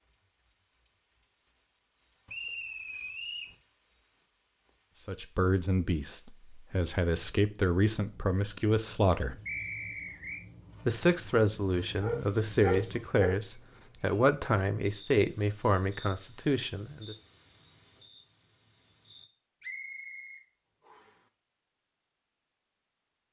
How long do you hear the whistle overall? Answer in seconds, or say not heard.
4 s.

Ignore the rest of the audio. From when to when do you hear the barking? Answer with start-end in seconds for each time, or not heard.
12.0-13.4.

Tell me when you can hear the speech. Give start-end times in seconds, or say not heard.
5.0-9.3, 10.8-17.1.